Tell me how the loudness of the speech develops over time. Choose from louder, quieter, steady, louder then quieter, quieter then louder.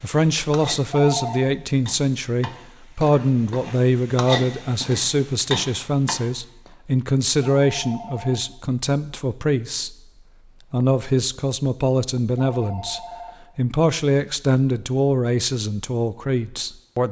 steady.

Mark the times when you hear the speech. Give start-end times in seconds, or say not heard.
0.0-9.9, 10.7-17.0.